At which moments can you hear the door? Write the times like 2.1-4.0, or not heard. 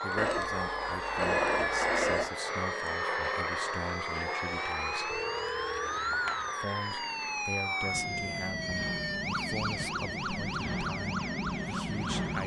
not heard.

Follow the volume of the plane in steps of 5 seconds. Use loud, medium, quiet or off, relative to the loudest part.
loud, medium, loud.